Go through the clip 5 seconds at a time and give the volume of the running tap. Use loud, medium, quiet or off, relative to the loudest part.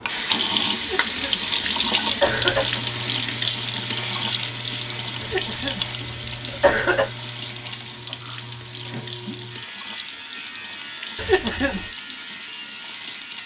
loud, medium, quiet.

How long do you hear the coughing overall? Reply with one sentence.
You can hear the coughing for 5 seconds altogether.